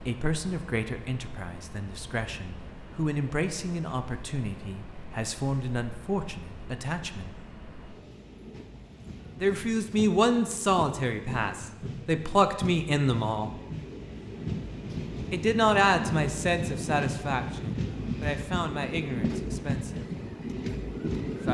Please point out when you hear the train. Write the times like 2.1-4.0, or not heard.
0.0-21.4.